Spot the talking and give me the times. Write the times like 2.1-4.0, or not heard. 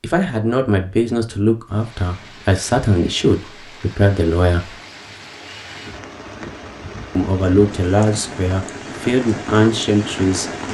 0.0-4.8, 7.2-10.5.